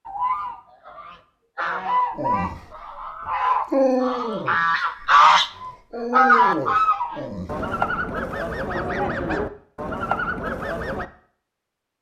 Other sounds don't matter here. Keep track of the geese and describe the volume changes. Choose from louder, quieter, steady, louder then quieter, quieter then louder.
louder then quieter.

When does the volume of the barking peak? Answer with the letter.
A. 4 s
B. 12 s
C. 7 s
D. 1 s
A.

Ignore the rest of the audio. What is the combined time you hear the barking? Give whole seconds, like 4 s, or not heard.
5 s.